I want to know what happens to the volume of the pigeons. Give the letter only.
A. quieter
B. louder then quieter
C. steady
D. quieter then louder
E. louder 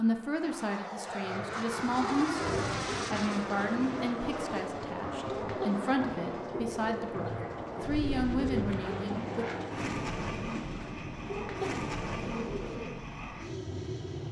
C.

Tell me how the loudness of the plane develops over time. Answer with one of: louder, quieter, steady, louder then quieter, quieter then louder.
steady.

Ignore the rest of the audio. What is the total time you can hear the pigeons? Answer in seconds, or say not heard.
12 s.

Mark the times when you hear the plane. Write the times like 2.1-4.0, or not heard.
0.0-14.2.